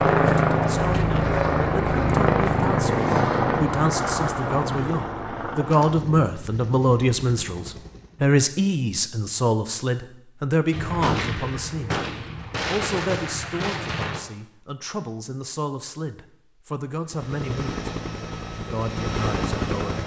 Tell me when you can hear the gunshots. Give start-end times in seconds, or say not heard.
10.7-14.2.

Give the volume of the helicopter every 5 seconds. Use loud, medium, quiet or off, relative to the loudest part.
loud, quiet, off, medium.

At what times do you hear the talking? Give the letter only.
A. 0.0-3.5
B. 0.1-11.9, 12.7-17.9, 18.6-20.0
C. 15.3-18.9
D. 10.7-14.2
B.